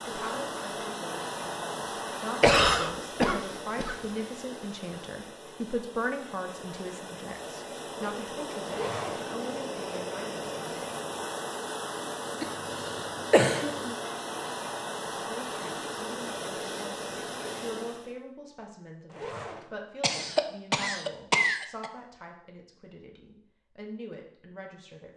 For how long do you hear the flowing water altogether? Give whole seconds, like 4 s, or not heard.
18 s.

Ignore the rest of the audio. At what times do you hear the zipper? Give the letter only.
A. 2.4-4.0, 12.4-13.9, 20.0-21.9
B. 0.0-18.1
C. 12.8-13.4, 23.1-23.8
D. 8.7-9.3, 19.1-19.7
D.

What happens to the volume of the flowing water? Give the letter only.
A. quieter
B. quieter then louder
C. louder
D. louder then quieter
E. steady
B.